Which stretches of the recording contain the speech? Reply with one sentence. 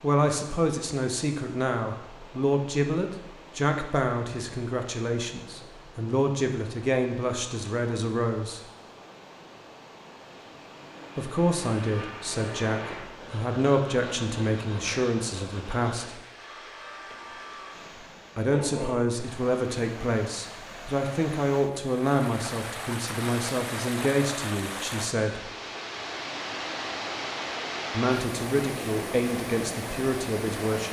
The speech can be heard from 0.0 to 8.6 s, from 11.2 to 16.2 s, from 18.4 to 25.4 s and from 27.9 to 30.8 s.